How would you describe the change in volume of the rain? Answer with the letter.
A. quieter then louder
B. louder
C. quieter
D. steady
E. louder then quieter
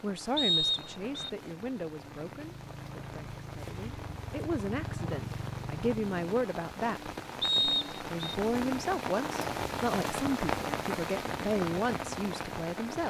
B.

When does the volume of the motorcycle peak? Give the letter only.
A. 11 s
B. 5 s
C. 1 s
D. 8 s
B.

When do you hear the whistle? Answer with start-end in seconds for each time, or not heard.
0.3-1.3, 7.4-8.1.